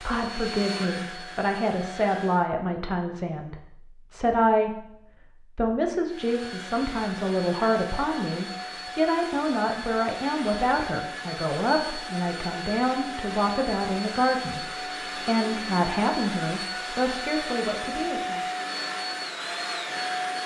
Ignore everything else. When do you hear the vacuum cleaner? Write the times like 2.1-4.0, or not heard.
0.0-2.5, 6.0-20.4.